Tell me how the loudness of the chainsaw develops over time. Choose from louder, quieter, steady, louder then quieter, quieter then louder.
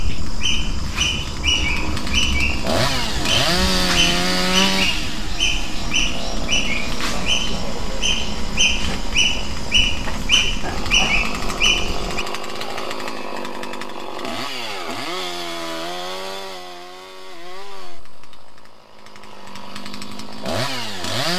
quieter.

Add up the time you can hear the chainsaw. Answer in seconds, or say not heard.
21 s.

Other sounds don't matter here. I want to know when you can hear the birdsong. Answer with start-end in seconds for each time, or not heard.
0.0-12.2.